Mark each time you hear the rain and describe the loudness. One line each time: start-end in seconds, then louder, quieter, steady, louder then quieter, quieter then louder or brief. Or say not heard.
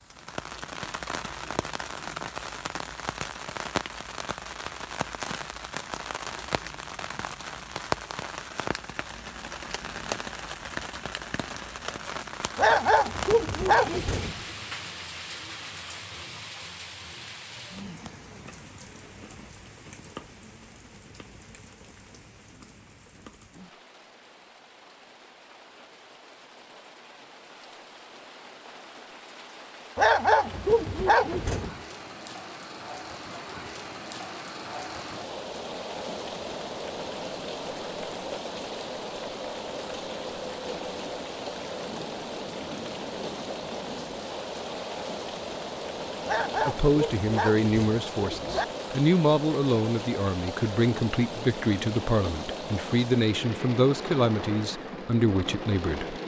0.0-56.2 quieter then louder.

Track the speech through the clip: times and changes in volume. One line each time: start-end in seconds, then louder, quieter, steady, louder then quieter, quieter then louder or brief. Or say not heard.
46.5-56.2 steady.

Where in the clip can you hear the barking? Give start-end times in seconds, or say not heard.
12.6-14.4, 29.9-31.8, 46.2-48.6.